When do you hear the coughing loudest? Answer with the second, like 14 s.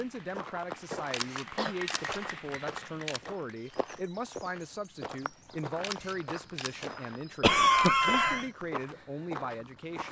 8 s.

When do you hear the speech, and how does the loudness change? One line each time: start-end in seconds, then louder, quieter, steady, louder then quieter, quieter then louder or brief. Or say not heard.
0.0-10.0 steady.